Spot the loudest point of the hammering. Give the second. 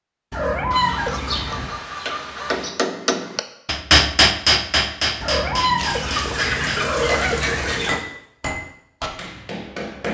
4 s.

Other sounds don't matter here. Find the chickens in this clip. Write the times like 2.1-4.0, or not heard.
0.7-2.7, 5.8-8.0.